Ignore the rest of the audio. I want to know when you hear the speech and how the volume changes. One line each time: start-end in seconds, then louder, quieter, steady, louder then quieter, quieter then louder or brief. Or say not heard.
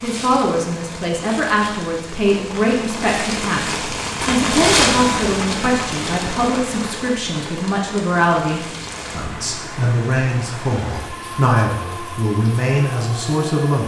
0.0-13.8 steady.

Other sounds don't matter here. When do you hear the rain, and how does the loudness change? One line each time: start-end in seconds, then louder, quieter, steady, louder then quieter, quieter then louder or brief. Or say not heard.
0.0-13.8 louder then quieter.